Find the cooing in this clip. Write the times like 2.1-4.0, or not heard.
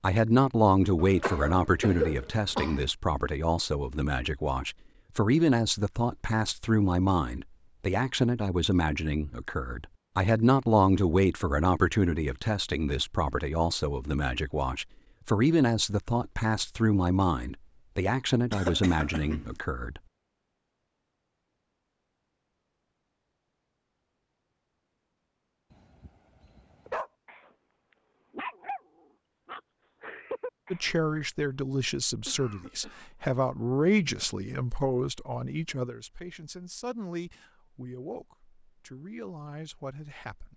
not heard.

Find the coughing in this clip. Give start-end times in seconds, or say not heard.
0.9-2.9, 18.5-19.6, 32.2-33.0.